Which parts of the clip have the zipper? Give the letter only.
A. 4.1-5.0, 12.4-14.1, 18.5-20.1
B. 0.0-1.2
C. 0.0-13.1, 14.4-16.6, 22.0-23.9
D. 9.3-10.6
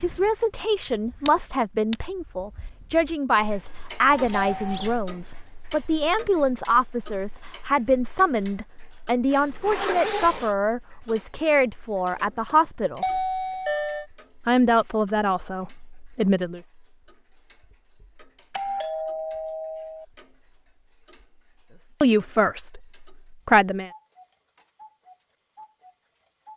D.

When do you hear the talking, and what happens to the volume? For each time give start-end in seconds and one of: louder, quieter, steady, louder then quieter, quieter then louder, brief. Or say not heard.
0.0-13.1 steady
14.4-16.6 brief
22.0-23.9 brief.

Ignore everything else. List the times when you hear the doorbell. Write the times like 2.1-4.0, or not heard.
4.1-5.0, 12.4-14.1, 18.5-20.1.